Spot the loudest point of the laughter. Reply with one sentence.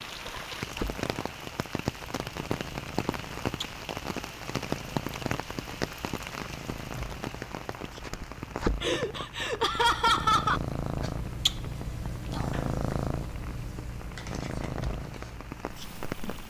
The volume of the laughter peaks at 10 seconds.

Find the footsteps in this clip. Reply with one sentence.
You can't hear the footsteps here.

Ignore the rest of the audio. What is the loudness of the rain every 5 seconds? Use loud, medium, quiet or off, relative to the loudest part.
loud, loud, medium, medium.